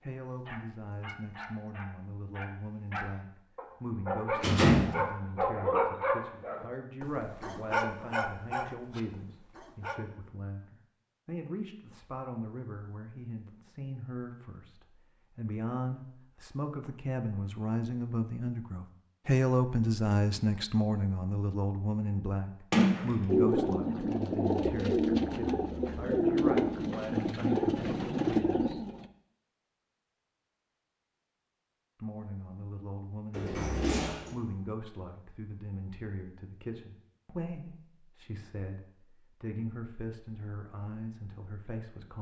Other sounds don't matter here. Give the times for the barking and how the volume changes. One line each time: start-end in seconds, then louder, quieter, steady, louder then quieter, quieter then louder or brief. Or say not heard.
0.5-10.0 louder then quieter.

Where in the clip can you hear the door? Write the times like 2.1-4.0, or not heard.
4.3-4.9, 22.7-23.9, 33.3-34.4.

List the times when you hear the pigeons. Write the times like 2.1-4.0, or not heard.
23.2-29.1.